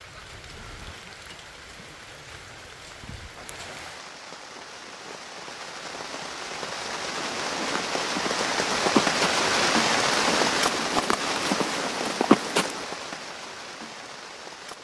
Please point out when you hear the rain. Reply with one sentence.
You can hear the rain from 0.0 to 14.7 s.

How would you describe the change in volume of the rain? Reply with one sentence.
The loudness of the rain goes up, then down.